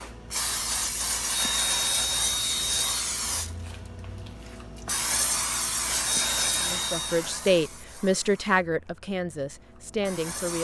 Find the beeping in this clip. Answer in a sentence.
The beeping can be heard from 1.3 to 3.0 s and from 6.0 to 7.2 s.